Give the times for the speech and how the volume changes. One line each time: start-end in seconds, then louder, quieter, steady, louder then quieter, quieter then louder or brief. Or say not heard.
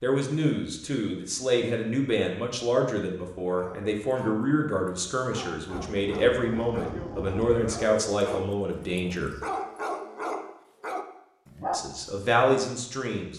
0.0-9.3 steady
11.7-13.3 brief.